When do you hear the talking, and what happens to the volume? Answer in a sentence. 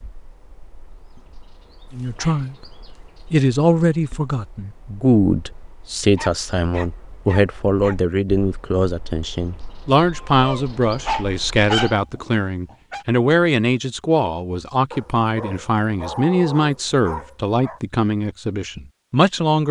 The talking can be heard briefly from 1.9 to 2.5 s; and from 3.3 to 19.6 s, at a steady volume.